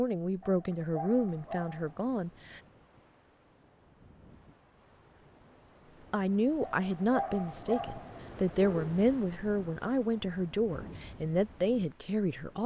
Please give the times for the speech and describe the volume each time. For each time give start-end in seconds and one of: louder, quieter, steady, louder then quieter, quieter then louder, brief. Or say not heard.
0.0-2.6 brief
6.1-12.6 steady.